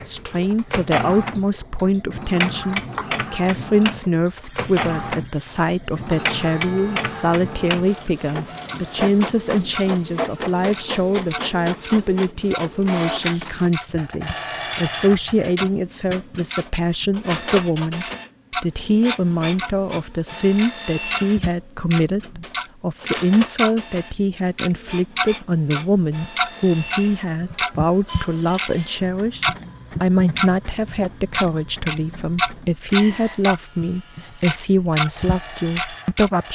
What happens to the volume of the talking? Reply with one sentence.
The volume of the talking stays about the same.